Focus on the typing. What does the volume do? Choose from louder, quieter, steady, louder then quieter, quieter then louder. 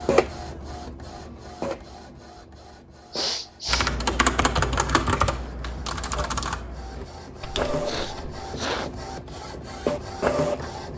quieter.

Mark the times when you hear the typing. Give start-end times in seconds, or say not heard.
3.6-8.4.